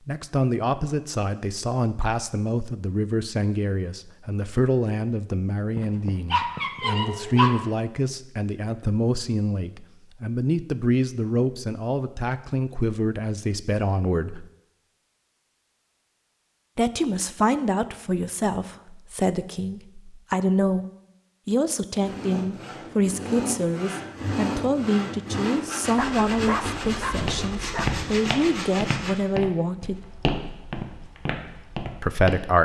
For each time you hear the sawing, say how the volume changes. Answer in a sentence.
The sawing can be heard from 22.0 to 29.1 s, at a steady volume.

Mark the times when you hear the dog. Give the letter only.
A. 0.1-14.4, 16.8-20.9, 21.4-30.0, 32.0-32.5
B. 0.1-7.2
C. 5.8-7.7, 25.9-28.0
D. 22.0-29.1
C.